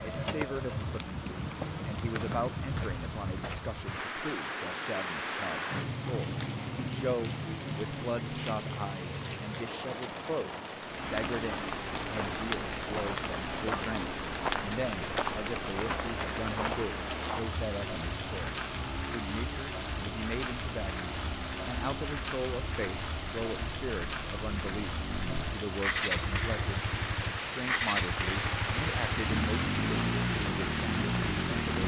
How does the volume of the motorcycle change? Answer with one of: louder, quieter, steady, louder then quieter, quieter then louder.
louder.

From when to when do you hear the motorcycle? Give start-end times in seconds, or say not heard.
10.8-31.8.